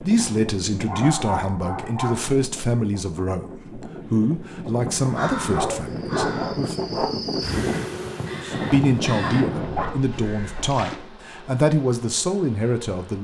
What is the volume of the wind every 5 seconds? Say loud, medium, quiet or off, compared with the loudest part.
medium, loud, off.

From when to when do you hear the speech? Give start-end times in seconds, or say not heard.
0.0-6.8, 8.4-13.2.